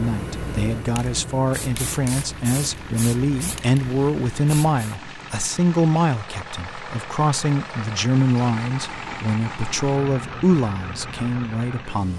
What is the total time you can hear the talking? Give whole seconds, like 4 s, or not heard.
12 s.